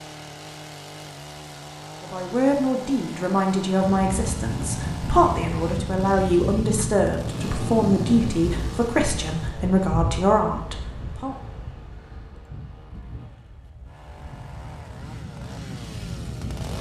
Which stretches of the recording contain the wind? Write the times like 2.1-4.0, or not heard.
3.8-16.7.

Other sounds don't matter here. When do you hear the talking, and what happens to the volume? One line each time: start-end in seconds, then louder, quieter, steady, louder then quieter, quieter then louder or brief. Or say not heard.
2.0-11.3 steady.